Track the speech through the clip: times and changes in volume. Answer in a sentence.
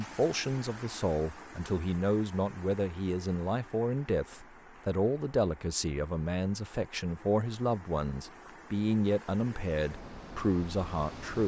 You can hear the speech from 0.0 to 11.4 s, at a steady volume.